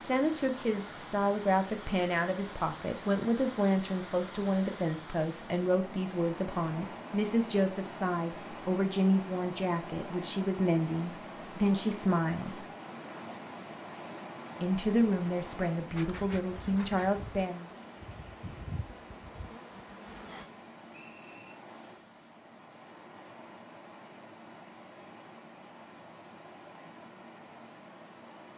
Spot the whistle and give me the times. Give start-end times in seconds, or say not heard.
20.2-21.5.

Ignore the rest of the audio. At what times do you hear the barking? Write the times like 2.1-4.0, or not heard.
not heard.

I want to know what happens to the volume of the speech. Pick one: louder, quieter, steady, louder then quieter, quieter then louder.
steady.